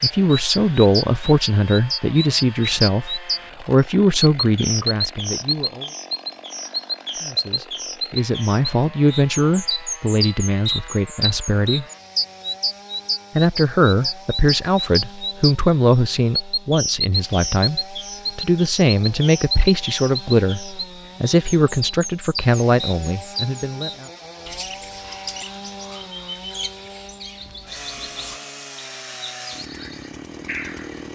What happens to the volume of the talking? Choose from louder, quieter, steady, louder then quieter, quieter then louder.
steady.